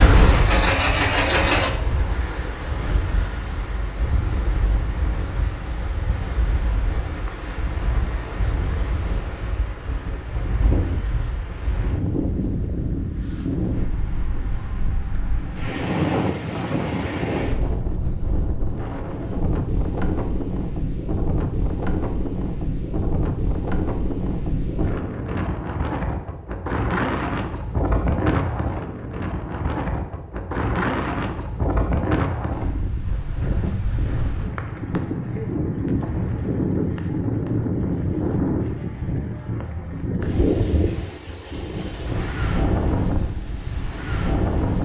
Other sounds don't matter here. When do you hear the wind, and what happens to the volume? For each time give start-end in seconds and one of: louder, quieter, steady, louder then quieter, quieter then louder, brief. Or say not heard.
0.0-44.8 louder.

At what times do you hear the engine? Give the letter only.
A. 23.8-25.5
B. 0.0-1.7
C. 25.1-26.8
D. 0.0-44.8
B.